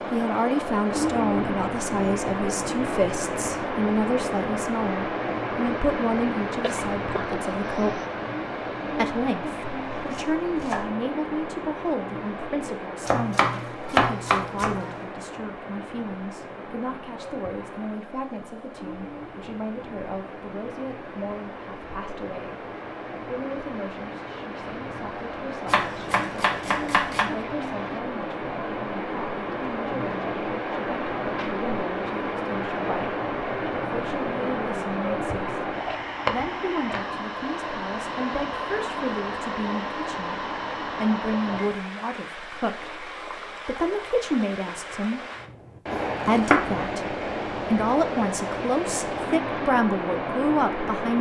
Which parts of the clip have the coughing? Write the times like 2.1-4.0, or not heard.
6.6-8.1.